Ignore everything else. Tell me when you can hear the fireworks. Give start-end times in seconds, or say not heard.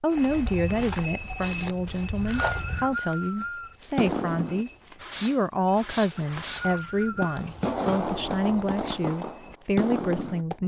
4.0-10.4.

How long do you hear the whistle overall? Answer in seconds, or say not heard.
3 s.